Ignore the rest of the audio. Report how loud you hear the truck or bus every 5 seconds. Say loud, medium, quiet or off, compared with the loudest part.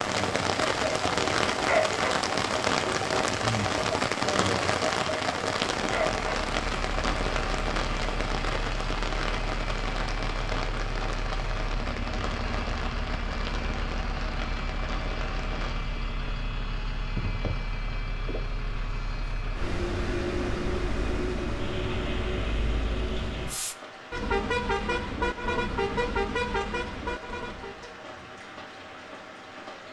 off, medium, medium, medium, loud, loud.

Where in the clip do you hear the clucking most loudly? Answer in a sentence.
The loudest moment of the clucking is at 2 seconds.